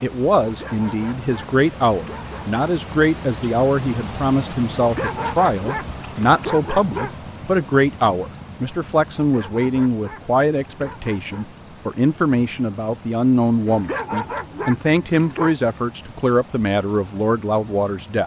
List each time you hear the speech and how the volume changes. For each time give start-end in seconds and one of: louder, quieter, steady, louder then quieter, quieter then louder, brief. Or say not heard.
0.0-18.2 steady.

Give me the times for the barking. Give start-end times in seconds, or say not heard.
0.4-2.6, 4.8-7.3, 9.2-11.5, 13.7-15.6.